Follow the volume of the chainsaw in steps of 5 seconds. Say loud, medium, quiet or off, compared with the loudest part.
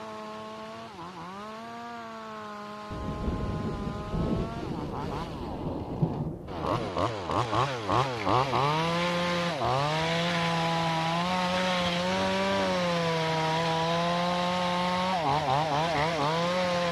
quiet, loud, loud, loud.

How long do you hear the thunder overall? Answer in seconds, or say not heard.
4 s.